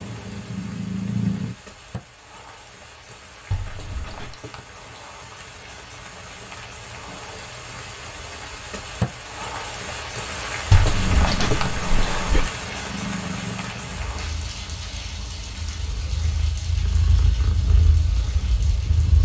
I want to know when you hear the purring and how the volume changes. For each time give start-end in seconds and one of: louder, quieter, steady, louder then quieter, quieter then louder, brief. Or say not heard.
0.0-1.6 brief
10.9-19.2 quieter then louder.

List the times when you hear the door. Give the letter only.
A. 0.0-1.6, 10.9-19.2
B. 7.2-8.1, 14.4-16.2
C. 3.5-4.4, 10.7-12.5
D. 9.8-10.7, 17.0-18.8
C.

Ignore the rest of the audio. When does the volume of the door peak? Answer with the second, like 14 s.
11 s.